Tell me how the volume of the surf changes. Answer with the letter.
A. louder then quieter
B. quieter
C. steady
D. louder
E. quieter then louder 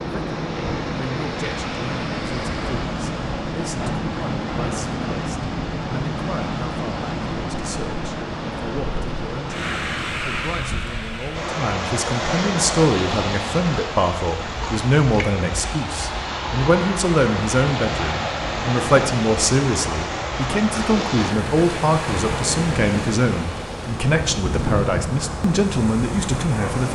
C.